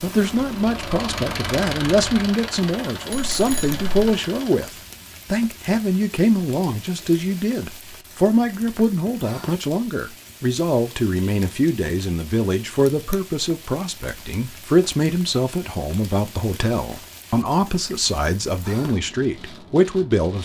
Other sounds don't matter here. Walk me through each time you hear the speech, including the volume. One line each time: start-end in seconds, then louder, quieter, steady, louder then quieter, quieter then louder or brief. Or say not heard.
0.0-20.3 steady.